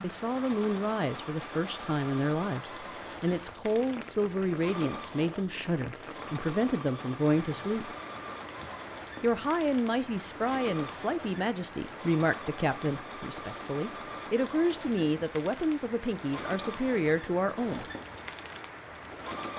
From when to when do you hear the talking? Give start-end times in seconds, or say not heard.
0.0-7.9, 9.2-17.9.